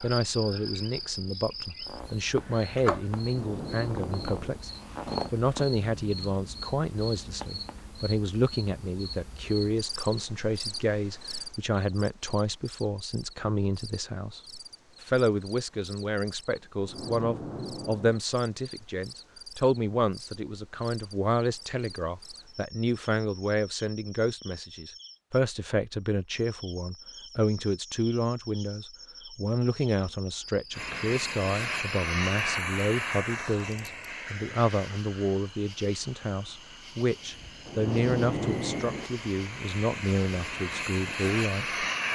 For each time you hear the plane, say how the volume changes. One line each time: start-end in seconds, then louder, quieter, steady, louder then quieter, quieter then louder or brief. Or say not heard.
30.7-42.0 quieter then louder.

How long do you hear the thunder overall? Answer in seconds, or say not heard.
4 s.